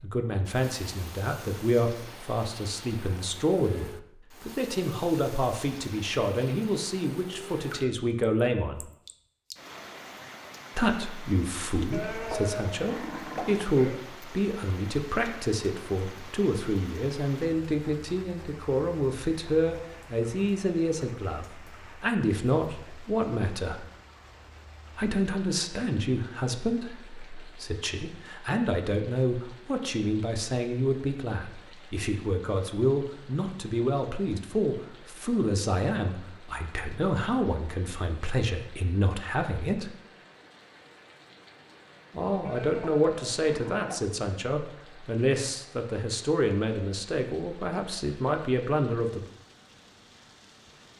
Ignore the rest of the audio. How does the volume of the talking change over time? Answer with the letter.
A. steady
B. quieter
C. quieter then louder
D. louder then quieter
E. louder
A.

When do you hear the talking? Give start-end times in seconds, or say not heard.
0.0-8.8, 10.8-23.9, 24.9-40.0, 42.1-49.2.